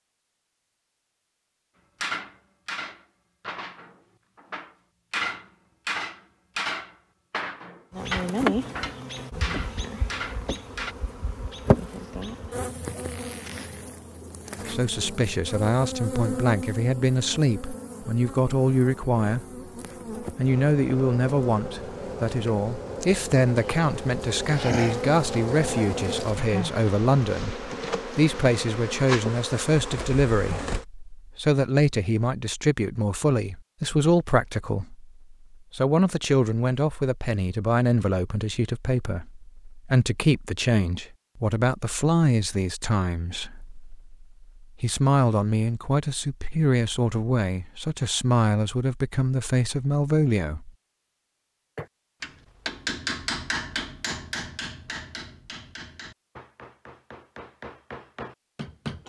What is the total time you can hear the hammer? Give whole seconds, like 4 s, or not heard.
16 s.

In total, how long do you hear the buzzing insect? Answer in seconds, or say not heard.
23 s.